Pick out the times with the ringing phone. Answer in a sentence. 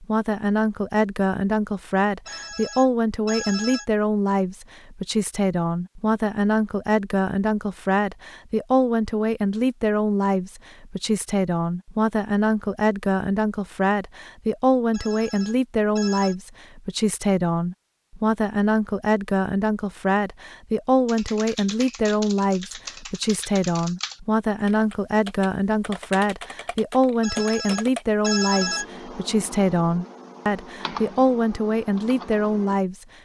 You can hear the ringing phone from 2.2 to 3.9 s, from 14.9 to 16.4 s and from 27.2 to 28.9 s.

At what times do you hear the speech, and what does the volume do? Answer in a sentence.
You can hear the speech from 0.0 to 33.0 s, at a steady volume.